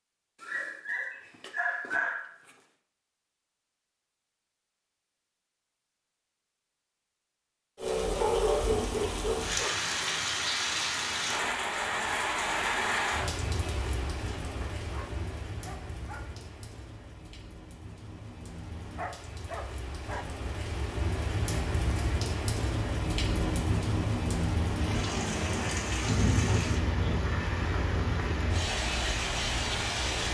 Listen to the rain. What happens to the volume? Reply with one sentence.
The loudness of the rain goes down, then up.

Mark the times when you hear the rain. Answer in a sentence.
The rain can be heard from 7.8 to 30.2 s.